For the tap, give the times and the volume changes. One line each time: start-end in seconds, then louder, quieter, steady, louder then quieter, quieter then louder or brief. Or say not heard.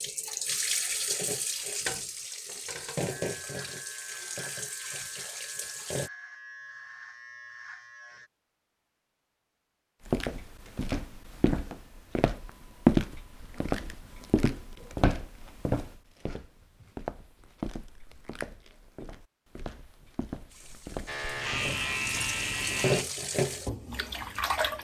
0.0-6.1 quieter
20.5-24.7 louder then quieter.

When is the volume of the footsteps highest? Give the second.
13 s.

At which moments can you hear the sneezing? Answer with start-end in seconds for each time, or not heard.
not heard.